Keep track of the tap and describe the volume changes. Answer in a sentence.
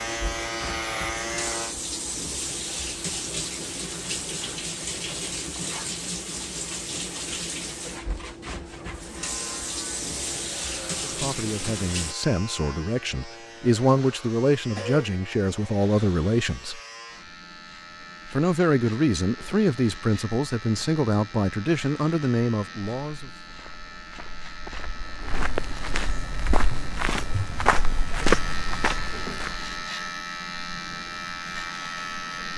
The loudness of the tap stays about the same.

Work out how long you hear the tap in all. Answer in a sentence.
You can hear the tap for 12 seconds altogether.